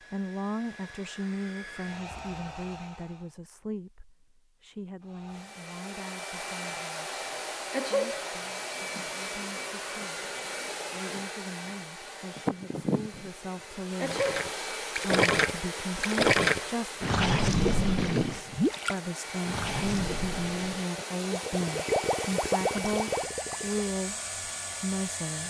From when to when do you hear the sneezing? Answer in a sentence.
You can hear the sneezing from 7.7 to 8.3 s and from 14.0 to 14.4 s.